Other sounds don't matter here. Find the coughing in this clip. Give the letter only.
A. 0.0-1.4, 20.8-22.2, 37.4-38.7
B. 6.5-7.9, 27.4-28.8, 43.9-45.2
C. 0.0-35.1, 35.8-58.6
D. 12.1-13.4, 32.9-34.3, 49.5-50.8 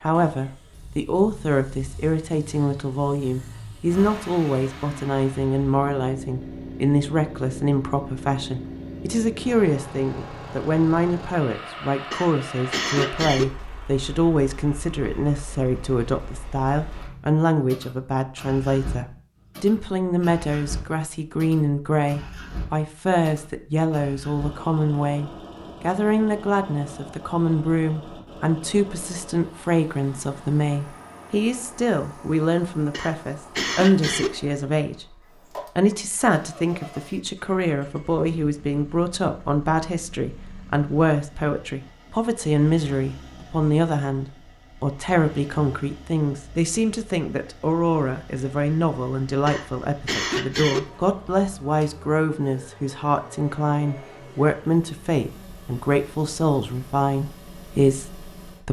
D.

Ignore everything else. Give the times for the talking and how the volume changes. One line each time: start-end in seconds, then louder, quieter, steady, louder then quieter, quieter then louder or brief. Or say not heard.
0.0-35.1 steady
35.8-58.6 steady.